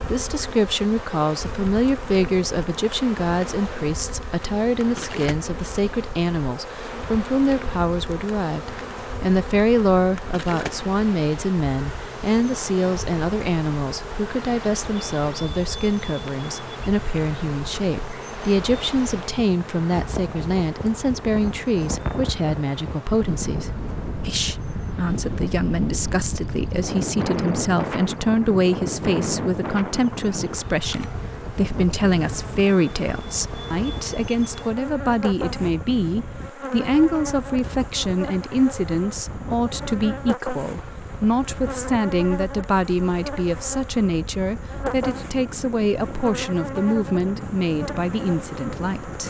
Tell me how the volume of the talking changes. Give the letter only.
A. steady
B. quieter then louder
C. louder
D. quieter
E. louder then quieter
A.